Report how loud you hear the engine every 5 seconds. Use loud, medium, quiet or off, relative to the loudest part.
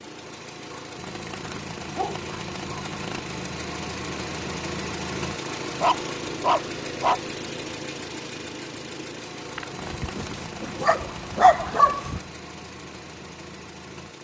loud, loud, medium.